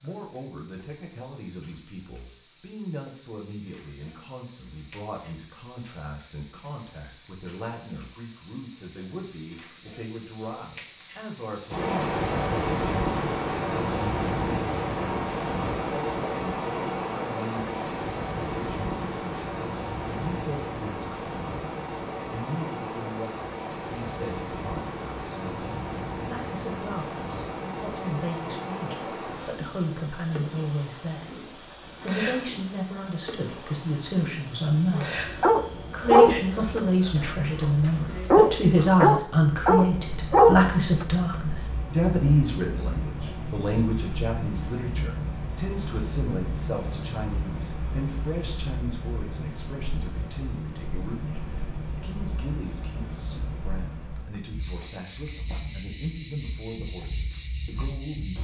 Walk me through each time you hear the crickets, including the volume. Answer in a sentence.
The crickets can be heard from 0.0 to 58.3 s, getting quieter.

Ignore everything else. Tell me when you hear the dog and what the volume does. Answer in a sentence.
The dog can be heard from 35.0 to 41.4 s, getting quieter then louder.